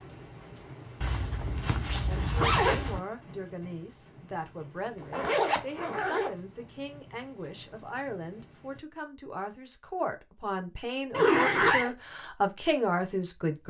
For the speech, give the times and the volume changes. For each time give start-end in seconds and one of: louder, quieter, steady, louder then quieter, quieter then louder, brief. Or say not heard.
2.0-13.6 louder.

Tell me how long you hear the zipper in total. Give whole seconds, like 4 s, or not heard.
4 s.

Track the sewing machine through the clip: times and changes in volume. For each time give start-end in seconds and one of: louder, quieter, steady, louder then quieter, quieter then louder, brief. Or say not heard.
not heard.